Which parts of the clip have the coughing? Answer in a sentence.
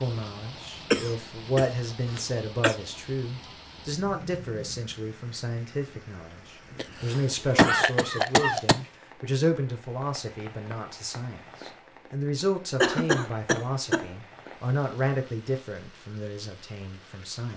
You can hear the coughing from 0.9 to 2.8 s, from 6.8 to 8.8 s and from 12.8 to 14.1 s.